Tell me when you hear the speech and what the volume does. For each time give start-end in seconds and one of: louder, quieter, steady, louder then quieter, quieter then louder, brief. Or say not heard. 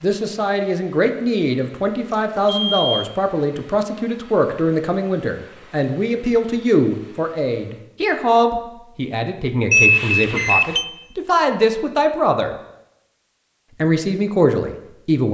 0.0-12.6 steady
13.8-15.2 brief.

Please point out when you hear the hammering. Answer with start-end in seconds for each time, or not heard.
not heard.